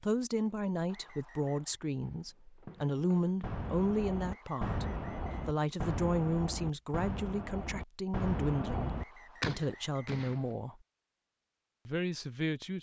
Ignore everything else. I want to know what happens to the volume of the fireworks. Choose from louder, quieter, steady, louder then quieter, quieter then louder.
louder.